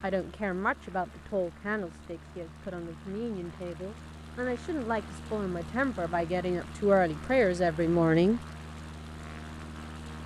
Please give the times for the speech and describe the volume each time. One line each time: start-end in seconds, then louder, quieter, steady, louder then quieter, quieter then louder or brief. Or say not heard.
0.0-8.4 quieter then louder.